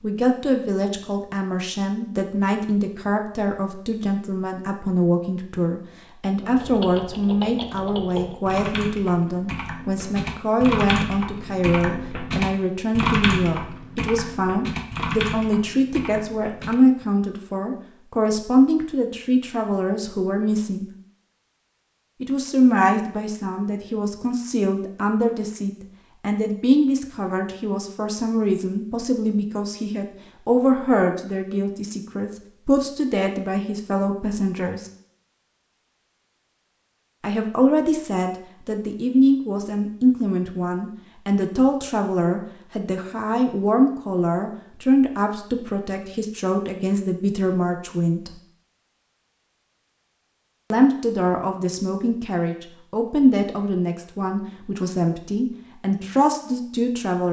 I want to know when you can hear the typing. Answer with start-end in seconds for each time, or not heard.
6.4-16.8.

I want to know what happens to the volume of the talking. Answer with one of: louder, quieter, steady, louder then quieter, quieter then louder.
steady.